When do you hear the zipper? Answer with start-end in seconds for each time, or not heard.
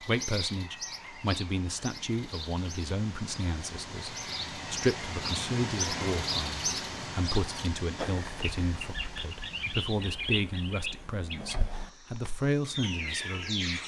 not heard.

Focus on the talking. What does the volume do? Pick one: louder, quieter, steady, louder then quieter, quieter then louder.
steady.